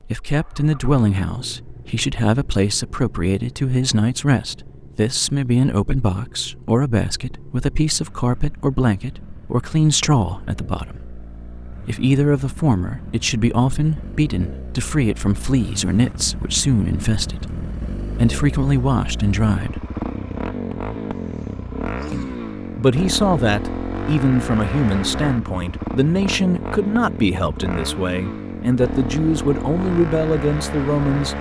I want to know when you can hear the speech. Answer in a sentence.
The speech can be heard from 0.1 to 19.9 s and from 22.1 to 31.3 s.